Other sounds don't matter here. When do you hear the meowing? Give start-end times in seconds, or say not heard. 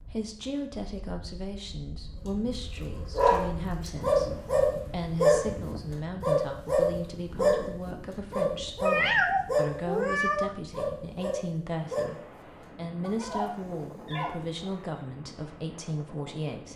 8.8-10.6.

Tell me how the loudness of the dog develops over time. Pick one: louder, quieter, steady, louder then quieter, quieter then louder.
quieter.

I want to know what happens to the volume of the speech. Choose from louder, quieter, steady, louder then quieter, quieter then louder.
steady.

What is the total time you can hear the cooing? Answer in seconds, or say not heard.
not heard.